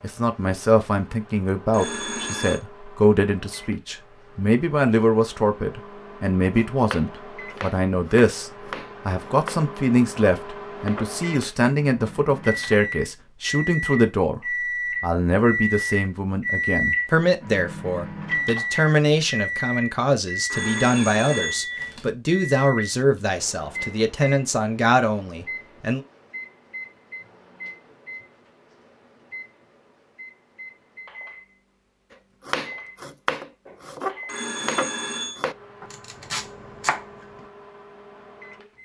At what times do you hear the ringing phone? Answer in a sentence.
The ringing phone can be heard from 1.7 to 2.6 s, from 20.5 to 22.1 s and from 34.2 to 35.5 s.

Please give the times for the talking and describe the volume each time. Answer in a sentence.
You can hear the talking from 0.0 to 14.4 s, at a steady volume; and from 15.0 to 26.0 s, at a steady volume.